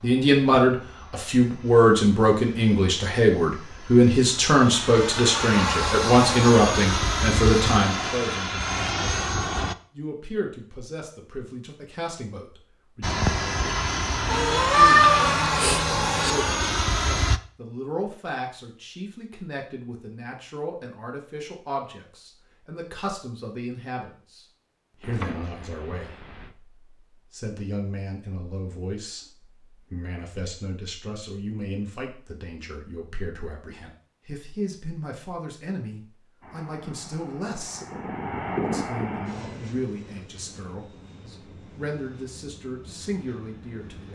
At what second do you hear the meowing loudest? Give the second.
15 s.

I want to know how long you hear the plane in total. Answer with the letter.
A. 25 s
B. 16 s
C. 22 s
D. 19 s
C.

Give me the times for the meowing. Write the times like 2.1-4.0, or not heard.
14.2-16.4, 25.0-26.5.